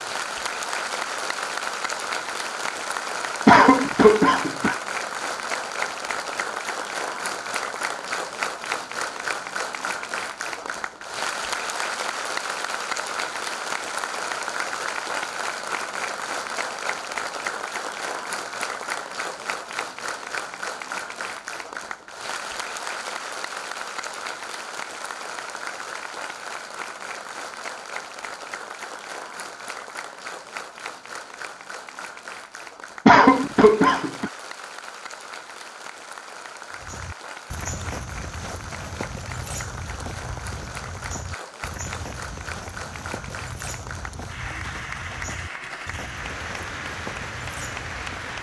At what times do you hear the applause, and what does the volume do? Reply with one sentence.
You can hear the applause from 0.0 to 48.3 s, getting quieter.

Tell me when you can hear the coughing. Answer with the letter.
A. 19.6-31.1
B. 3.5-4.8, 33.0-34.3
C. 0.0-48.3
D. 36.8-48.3
B.